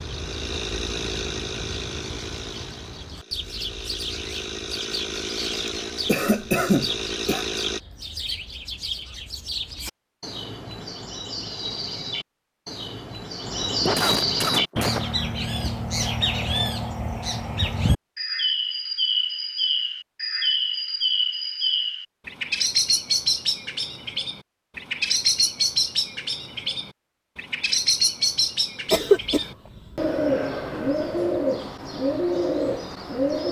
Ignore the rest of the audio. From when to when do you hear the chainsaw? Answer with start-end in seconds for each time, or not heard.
0.0-7.8.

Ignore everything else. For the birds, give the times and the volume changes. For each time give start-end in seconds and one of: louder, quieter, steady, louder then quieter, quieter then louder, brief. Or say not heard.
0.0-33.4 louder.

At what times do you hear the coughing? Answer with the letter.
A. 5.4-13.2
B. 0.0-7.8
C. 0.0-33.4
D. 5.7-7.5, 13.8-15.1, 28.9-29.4
D.